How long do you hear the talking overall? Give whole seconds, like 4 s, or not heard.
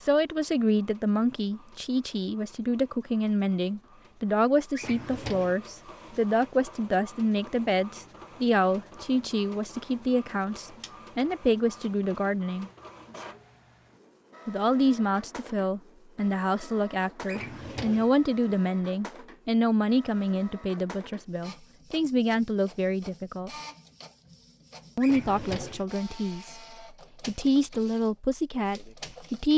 26 s.